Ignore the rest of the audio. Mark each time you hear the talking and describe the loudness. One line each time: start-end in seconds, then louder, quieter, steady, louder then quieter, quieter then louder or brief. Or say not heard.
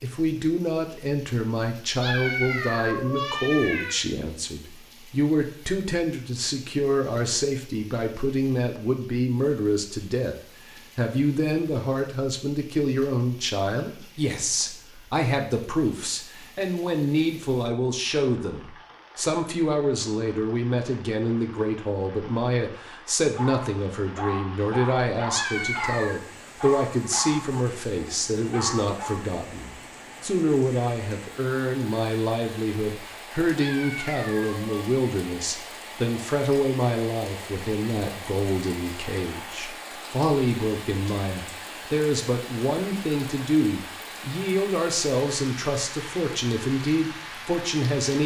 0.0-10.3 steady
10.9-48.2 steady.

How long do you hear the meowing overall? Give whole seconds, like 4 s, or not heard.
4 s.